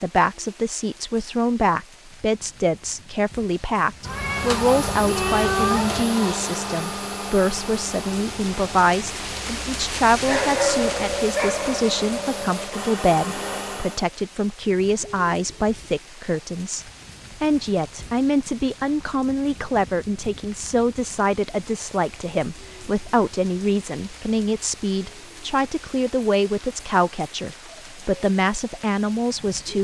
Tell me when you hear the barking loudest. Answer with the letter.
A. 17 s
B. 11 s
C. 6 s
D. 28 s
B.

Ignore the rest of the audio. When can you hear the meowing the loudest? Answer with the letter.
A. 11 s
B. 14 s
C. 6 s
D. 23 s
C.